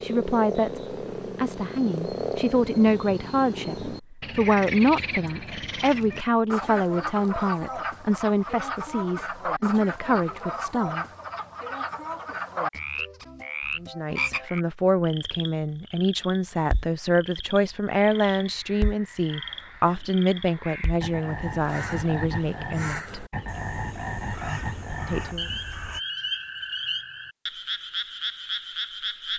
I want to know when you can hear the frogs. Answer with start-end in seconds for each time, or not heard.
0.0-29.3.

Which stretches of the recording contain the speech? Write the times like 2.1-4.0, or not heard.
0.0-11.1, 13.8-23.2, 25.1-25.5.